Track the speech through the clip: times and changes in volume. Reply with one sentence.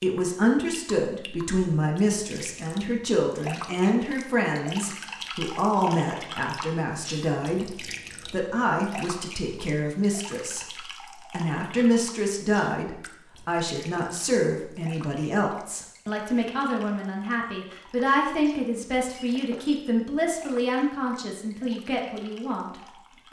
The speech can be heard from 0.0 to 23.2 s, at a steady volume.